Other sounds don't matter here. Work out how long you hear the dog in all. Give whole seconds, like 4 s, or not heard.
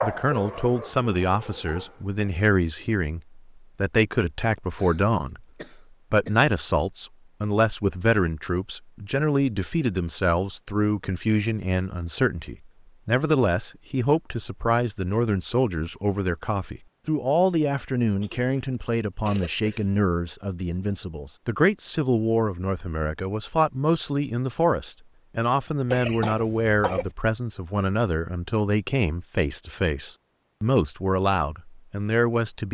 2 s.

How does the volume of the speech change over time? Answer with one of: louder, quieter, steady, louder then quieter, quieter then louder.
steady.